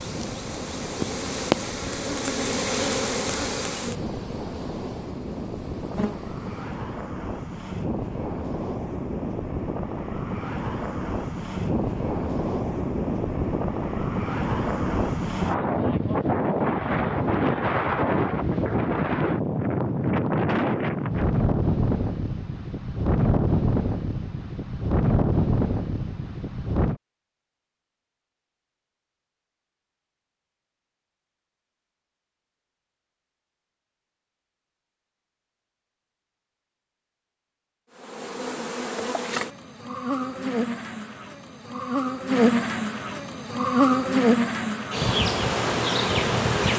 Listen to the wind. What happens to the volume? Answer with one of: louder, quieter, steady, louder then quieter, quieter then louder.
louder.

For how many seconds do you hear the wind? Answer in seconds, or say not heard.
27 s.